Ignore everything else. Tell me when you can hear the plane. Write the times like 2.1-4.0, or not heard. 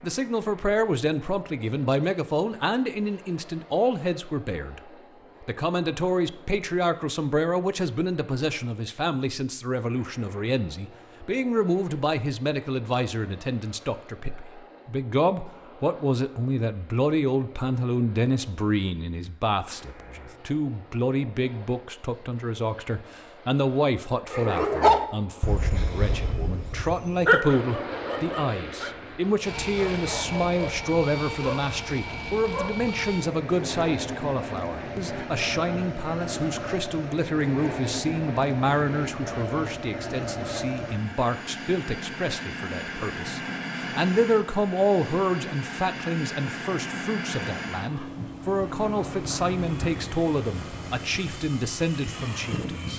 0.0-52.9.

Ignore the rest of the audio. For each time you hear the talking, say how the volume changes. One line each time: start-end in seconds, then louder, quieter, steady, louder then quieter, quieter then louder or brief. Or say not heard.
0.0-52.9 steady.